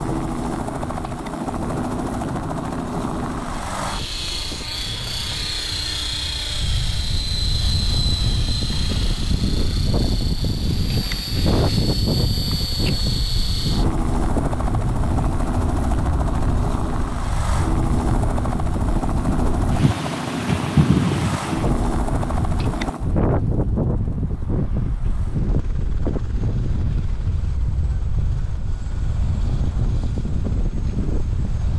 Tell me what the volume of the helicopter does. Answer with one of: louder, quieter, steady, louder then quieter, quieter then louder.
quieter.